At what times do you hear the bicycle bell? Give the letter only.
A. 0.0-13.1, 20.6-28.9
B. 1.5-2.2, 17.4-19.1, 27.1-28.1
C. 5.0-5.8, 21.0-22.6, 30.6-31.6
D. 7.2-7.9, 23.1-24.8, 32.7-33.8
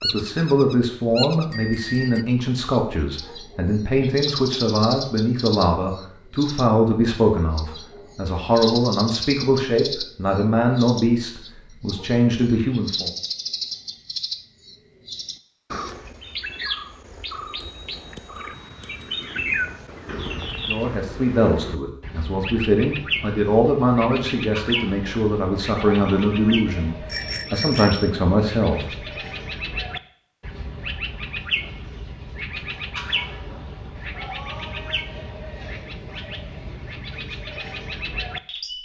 B.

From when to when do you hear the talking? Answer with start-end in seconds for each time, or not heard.
0.0-13.1, 20.6-28.9.